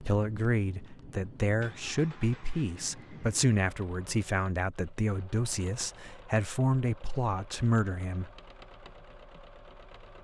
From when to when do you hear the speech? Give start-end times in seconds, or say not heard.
0.0-8.3.